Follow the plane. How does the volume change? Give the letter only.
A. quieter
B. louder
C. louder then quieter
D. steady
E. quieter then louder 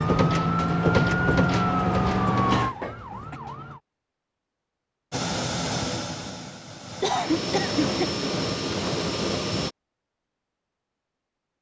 E.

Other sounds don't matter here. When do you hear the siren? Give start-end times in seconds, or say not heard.
0.0-3.8.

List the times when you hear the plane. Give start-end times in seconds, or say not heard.
5.1-9.8.